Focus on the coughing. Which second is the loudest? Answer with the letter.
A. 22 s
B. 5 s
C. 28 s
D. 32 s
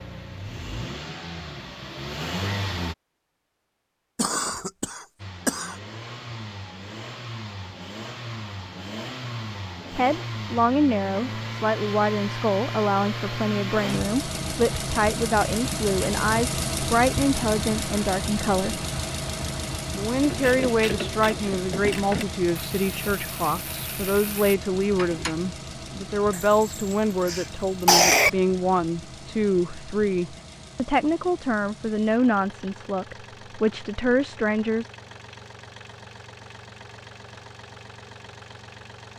C.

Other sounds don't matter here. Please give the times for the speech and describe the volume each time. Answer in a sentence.
You can hear the speech from 9.9 to 18.8 s, at a steady volume; and from 19.9 to 34.9 s, at a steady volume.